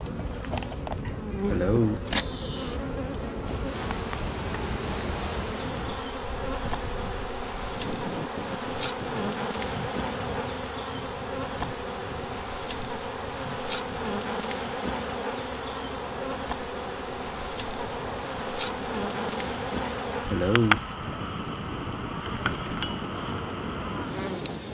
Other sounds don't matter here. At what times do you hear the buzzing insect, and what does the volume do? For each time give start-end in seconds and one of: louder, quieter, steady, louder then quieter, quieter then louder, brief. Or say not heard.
0.0-24.7 steady.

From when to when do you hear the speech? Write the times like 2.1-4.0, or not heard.
not heard.